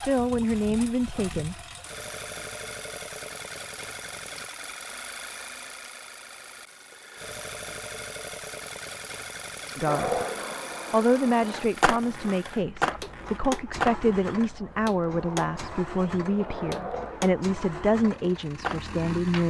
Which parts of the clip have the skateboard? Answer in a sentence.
You can hear the skateboard from 9.8 to 19.4 s.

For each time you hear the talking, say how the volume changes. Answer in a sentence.
The talking can be heard briefly from 0.0 to 1.6 s; briefly from 9.8 to 10.2 s; and from 10.9 to 19.4 s, at a steady volume.